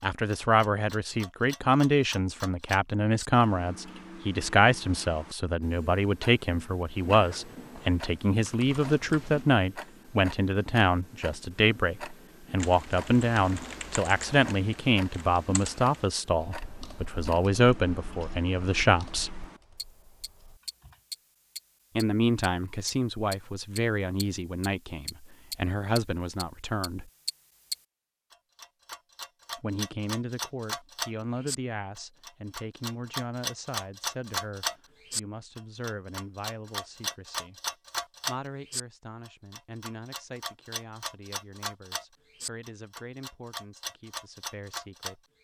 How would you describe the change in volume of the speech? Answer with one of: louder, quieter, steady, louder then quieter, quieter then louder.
quieter.